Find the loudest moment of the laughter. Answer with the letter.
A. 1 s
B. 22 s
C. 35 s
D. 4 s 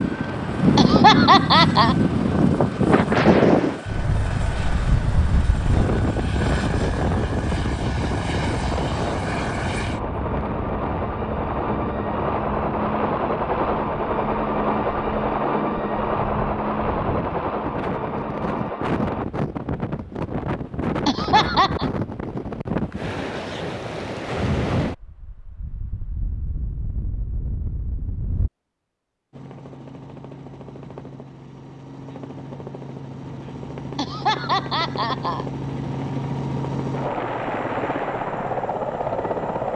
A.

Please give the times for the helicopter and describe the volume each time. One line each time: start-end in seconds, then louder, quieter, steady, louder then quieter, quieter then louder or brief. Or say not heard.
0.0-19.2 louder
29.3-39.7 louder.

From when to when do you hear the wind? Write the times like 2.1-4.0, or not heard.
0.0-28.5.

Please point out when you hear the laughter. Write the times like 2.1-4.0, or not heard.
0.8-1.9, 21.1-21.9, 34.0-35.5.